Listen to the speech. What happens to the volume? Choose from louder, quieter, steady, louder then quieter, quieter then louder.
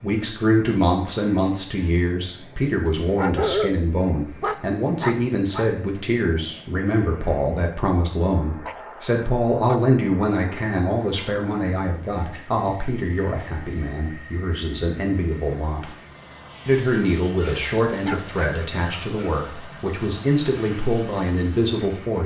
steady.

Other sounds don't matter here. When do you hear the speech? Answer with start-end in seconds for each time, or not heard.
0.0-15.9, 16.6-22.2.